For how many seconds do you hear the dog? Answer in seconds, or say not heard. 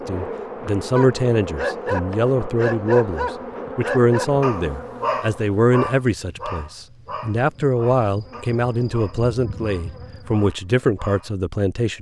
10 s.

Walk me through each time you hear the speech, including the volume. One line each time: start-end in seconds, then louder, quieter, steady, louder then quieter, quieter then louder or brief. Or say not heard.
0.1-11.9 steady.